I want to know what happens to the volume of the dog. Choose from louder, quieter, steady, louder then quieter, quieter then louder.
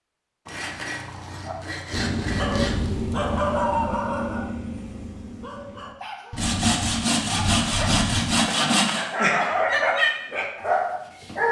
quieter then louder.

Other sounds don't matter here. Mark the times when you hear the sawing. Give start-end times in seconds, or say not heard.
0.5-2.9, 6.3-9.1.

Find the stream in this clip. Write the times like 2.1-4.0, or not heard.
not heard.